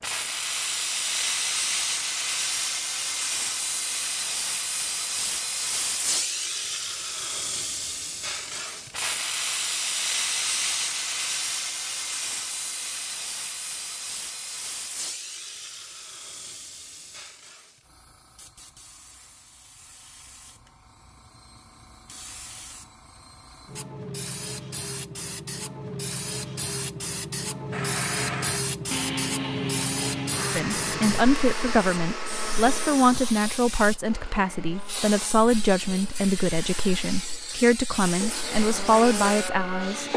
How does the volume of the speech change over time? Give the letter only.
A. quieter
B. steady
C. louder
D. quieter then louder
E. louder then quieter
B.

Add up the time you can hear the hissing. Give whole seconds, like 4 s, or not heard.
40 s.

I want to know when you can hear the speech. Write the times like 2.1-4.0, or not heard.
30.6-40.1.